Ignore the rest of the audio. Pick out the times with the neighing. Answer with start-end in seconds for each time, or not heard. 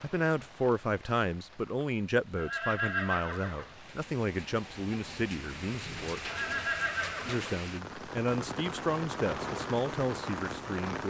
2.4-3.8, 6.2-7.6.